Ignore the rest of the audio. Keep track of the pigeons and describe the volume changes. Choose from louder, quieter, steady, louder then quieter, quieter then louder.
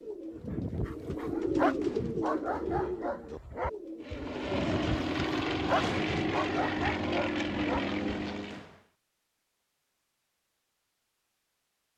louder then quieter.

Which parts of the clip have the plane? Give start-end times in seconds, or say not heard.
4.0-8.7.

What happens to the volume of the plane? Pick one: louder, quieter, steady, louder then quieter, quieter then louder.
steady.